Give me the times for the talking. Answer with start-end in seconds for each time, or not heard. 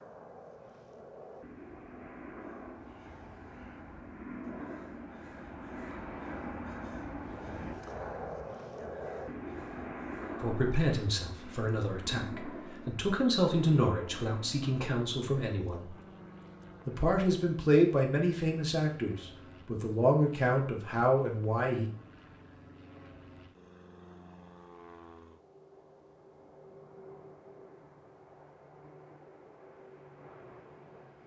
10.4-15.9, 16.9-21.9.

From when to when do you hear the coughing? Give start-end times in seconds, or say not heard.
not heard.